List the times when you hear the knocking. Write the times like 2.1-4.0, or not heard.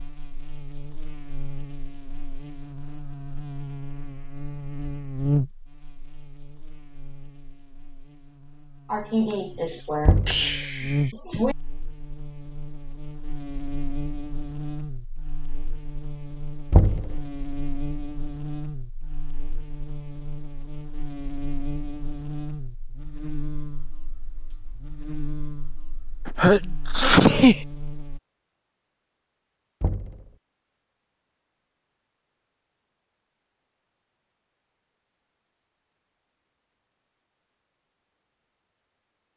10.1-10.6, 16.7-17.2, 29.8-30.3.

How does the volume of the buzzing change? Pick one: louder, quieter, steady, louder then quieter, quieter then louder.
quieter.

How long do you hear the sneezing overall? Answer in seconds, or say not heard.
4 s.